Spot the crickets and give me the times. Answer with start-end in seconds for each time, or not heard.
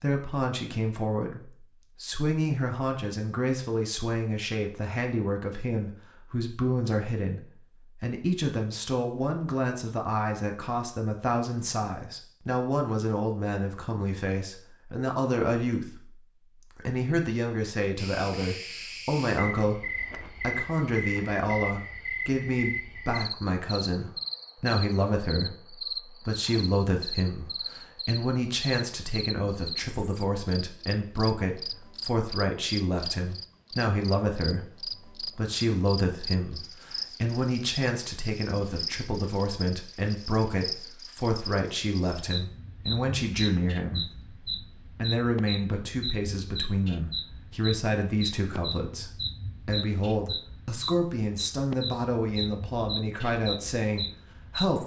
17.9-54.8.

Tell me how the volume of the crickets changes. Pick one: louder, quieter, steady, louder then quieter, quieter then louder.
steady.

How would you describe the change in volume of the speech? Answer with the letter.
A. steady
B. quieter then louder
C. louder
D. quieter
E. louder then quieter
A.